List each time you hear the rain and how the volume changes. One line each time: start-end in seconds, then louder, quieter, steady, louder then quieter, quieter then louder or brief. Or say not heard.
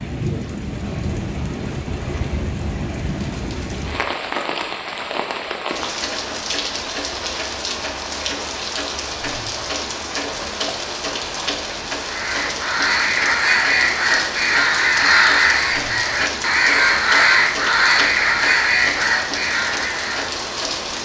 0.0-20.9 steady.